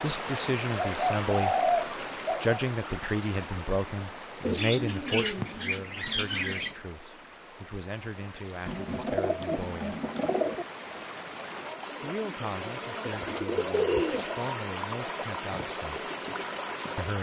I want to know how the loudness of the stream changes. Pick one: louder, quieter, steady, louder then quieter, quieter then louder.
quieter then louder.